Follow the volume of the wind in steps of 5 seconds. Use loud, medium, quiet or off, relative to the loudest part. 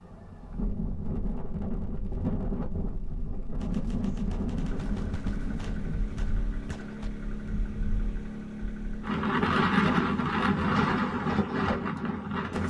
medium, loud, loud.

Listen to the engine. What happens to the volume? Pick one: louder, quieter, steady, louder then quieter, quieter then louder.
steady.